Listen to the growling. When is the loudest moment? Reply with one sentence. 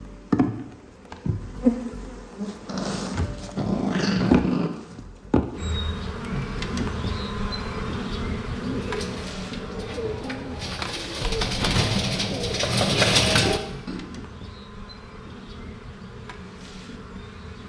The loudest moment of the growling is at 4 seconds.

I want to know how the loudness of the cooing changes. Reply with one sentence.
The loudness of the cooing goes up.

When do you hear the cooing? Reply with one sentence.
The cooing can be heard from 8.4 to 14.1 s.